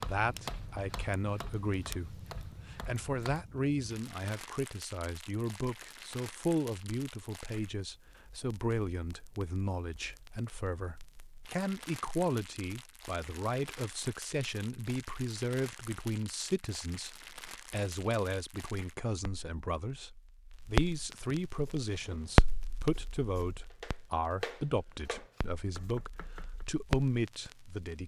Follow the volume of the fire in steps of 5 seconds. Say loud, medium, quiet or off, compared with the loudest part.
quiet, quiet, quiet, quiet, loud, medium.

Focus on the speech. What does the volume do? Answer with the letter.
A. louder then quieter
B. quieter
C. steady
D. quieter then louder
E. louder
C.